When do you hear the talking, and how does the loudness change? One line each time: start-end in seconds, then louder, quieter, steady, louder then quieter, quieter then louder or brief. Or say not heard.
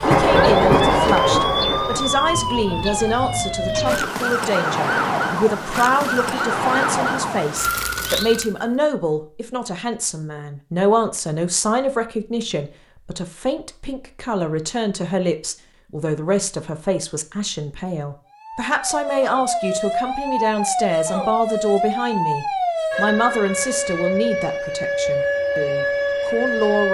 0.0-26.9 steady.